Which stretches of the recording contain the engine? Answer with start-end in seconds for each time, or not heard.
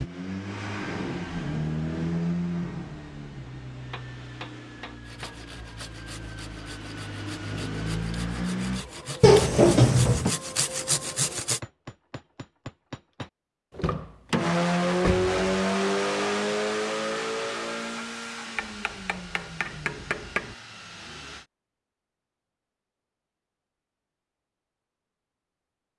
0.0-8.8, 14.3-21.4.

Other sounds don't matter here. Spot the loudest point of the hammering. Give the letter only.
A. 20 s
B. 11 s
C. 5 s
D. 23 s
A.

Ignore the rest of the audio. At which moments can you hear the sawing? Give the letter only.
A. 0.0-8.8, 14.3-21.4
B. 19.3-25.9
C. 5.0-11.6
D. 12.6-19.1
C.